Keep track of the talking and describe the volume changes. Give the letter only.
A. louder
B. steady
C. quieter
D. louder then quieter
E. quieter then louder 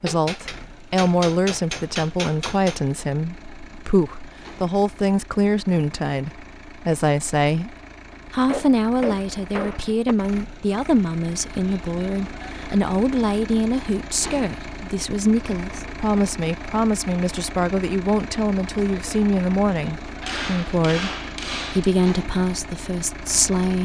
B.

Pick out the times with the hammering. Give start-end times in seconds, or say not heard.
0.1-2.8, 8.1-10.2, 20.2-21.9.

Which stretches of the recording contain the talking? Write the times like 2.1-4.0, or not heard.
0.0-23.8.